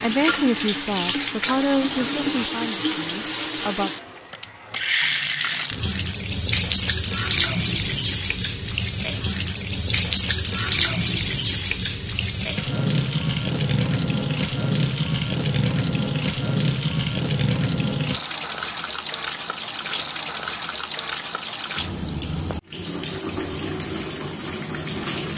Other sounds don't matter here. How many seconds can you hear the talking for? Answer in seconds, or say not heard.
4 s.